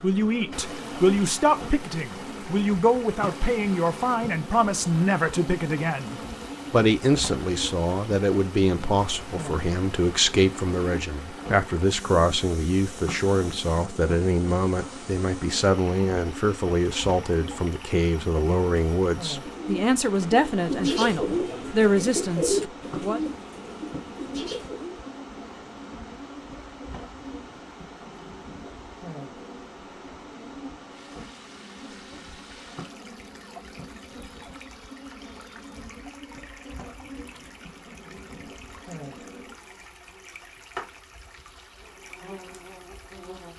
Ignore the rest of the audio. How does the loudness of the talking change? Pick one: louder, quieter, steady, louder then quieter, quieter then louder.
steady.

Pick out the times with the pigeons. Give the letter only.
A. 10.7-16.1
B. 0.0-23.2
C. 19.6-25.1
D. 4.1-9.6
C.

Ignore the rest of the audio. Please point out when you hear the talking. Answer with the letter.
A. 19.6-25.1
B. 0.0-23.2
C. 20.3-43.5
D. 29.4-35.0
B.